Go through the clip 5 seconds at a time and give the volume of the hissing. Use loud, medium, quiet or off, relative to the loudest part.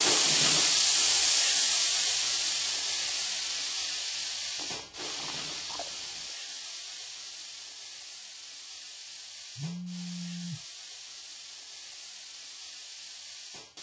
loud, quiet, quiet.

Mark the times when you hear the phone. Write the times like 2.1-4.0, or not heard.
9.6-10.7.